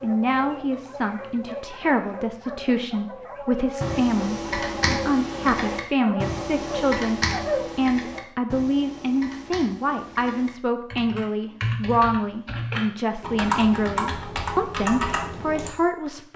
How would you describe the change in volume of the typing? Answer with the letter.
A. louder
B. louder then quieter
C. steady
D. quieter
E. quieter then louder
E.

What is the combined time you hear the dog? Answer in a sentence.
You can hear the dog for 8 seconds altogether.